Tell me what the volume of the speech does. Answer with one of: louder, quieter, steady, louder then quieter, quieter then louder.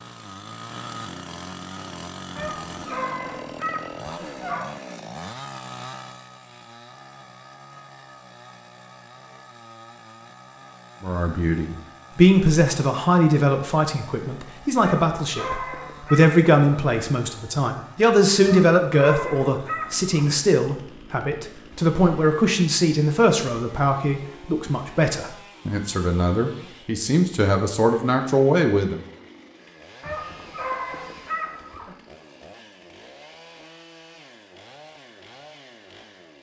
steady.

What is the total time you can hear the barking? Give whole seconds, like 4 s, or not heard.
8 s.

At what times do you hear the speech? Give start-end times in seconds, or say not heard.
11.0-29.0.